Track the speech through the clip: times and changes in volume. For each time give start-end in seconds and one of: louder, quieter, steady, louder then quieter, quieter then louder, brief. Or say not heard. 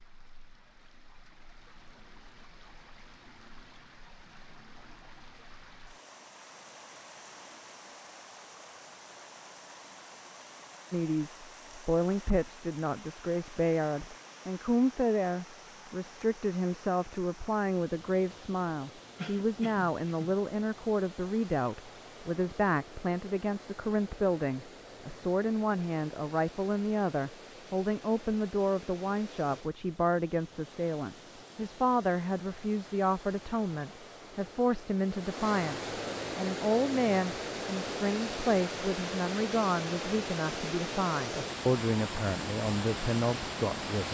10.9-44.0 steady.